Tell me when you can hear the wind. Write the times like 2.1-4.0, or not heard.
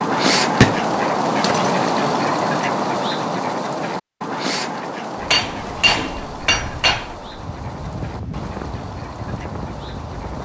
5.3-10.4.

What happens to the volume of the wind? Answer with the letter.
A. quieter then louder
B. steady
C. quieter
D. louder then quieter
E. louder
E.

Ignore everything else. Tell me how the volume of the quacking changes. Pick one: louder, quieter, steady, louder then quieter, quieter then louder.
quieter.